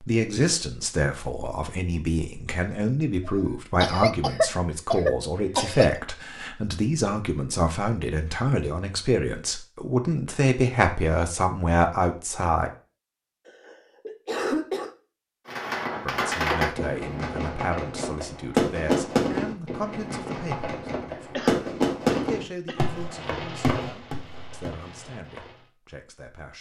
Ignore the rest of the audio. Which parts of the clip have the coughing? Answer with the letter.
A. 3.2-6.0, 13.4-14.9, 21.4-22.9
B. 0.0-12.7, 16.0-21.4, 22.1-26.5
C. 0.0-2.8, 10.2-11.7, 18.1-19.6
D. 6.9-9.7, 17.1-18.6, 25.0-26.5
A.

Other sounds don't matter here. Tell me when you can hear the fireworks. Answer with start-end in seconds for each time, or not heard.
15.4-25.6.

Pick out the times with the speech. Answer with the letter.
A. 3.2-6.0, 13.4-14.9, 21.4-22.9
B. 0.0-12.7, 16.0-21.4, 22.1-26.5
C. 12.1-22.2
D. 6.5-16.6
B.